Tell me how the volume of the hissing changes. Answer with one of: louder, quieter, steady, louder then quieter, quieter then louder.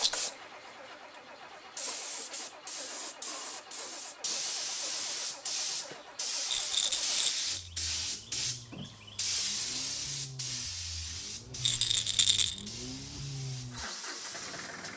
louder then quieter.